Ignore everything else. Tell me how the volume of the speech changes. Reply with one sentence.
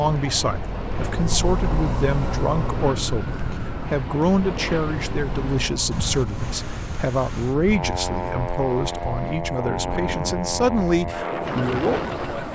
The loudness of the speech stays about the same.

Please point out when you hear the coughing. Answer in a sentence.
You can't hear the coughing here.